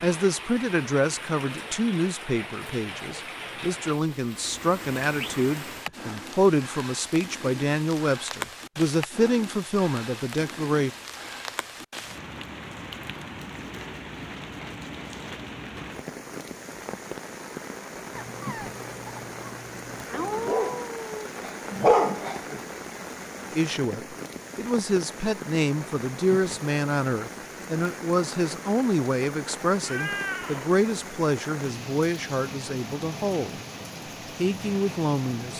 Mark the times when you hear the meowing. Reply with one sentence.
You can hear the meowing from 5.2 to 5.9 s, from 20.1 to 21.2 s and from 29.8 to 30.7 s.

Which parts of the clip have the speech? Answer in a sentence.
You can hear the speech from 0.0 to 10.9 s, from 23.5 to 33.5 s and from 34.4 to 35.5 s.